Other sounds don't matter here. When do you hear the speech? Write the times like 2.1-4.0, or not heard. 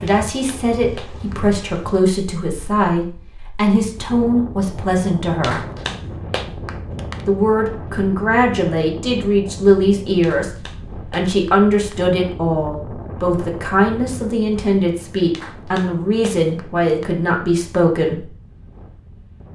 0.0-5.5, 7.2-18.2.